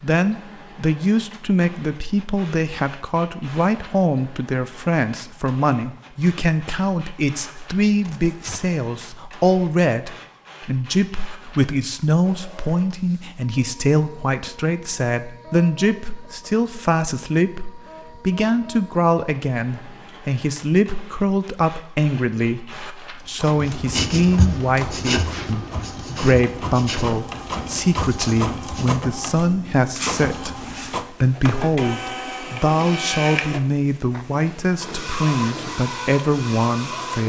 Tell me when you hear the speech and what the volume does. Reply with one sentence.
You can hear the speech from 0.0 to 37.2 s, at a steady volume.